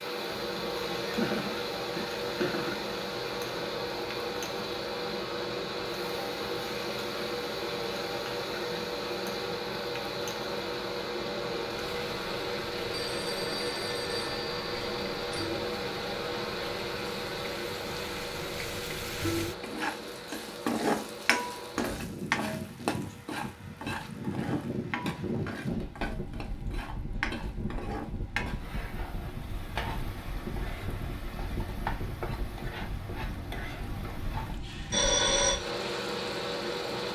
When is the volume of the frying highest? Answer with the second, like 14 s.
21 s.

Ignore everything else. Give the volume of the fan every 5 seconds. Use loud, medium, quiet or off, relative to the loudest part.
loud, loud, loud, loud, medium, medium, medium, loud.